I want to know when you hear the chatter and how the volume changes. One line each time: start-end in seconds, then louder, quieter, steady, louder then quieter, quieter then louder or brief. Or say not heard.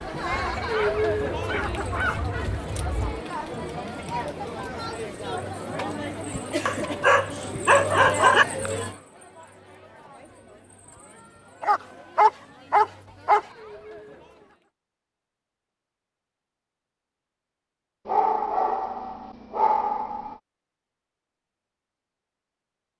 0.0-14.7 quieter.